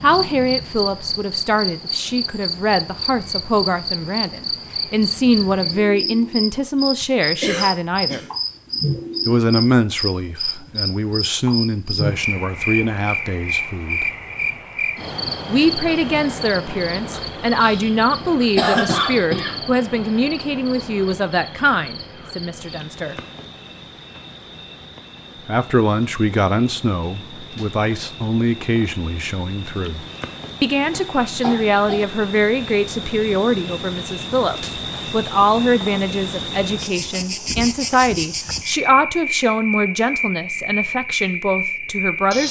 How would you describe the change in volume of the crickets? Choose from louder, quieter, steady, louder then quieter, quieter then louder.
quieter then louder.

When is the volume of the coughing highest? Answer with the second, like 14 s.
19 s.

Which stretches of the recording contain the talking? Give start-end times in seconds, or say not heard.
0.0-8.2, 9.2-14.1, 15.4-23.1, 25.4-42.4.